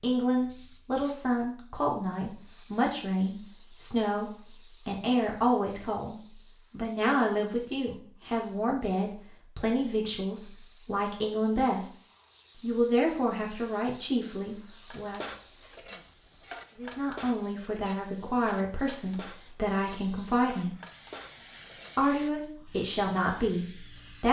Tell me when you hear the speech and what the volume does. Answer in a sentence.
You can hear the speech from 0.0 to 11.9 s, at a steady volume; briefly from 12.6 to 15.2 s; from 16.8 to 20.8 s, at a steady volume; and briefly from 21.9 to 24.2 s.